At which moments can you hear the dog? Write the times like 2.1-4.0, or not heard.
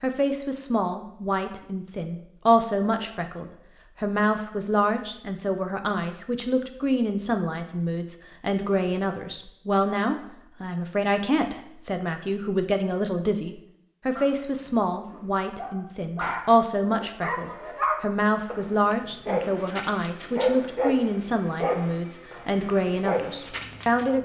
14.2-24.2.